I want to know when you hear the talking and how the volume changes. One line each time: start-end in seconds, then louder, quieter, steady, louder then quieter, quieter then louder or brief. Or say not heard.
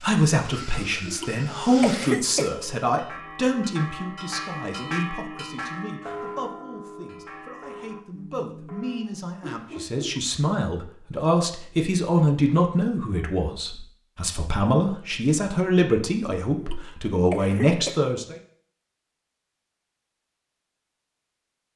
0.0-18.4 quieter then louder.